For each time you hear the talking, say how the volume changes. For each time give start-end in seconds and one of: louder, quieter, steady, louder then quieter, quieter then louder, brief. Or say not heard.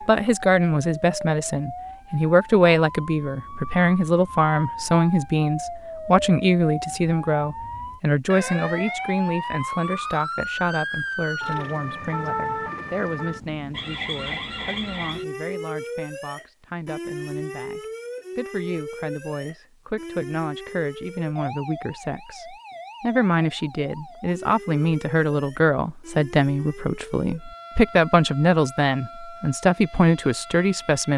0.1-31.1 quieter then louder.